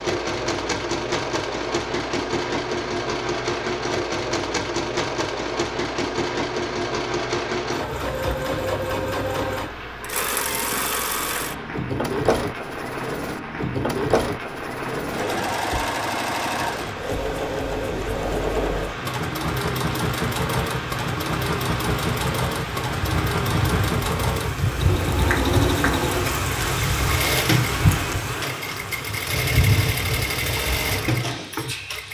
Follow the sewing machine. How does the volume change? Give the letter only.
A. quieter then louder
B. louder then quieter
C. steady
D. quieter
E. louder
C.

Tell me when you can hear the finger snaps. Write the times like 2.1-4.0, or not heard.
25.2-25.9.